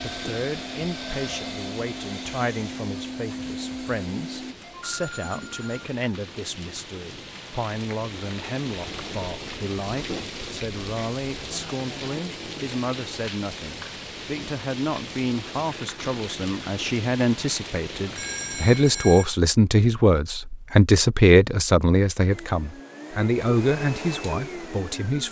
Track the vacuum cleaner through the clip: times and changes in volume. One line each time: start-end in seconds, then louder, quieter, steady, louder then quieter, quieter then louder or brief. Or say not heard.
0.0-4.5 steady
22.2-25.2 brief.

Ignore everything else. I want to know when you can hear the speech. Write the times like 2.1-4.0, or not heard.
0.0-25.2.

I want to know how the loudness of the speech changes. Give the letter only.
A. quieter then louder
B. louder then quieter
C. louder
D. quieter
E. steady
C.